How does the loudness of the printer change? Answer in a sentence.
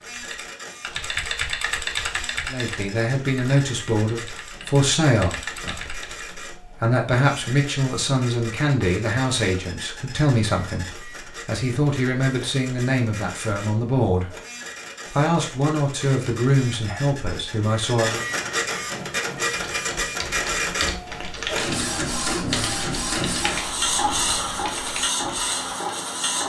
The volume of the printer goes up.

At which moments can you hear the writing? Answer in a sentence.
You can't hear the writing here.